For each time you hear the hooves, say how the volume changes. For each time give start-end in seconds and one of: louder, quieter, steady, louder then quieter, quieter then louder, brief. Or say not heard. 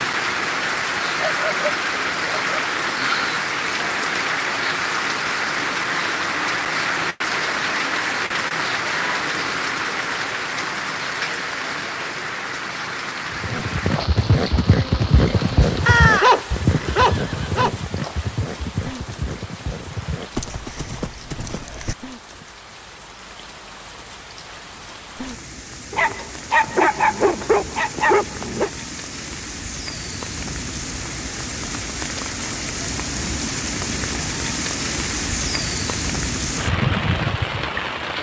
13.3-22.4 quieter.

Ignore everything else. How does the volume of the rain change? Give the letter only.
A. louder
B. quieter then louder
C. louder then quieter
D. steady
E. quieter
B.